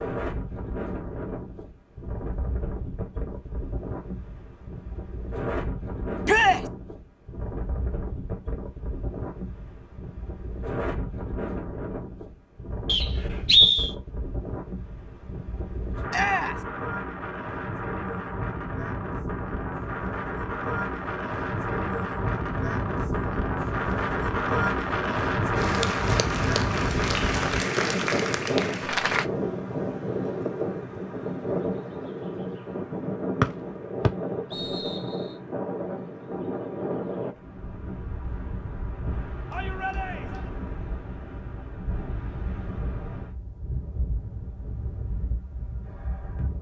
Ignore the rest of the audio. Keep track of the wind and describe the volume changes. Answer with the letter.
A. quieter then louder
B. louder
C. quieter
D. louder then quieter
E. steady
D.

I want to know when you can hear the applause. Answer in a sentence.
The applause can be heard from 25.6 to 29.2 s.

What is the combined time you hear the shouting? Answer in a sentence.
The shouting can be heard for 2 seconds in total.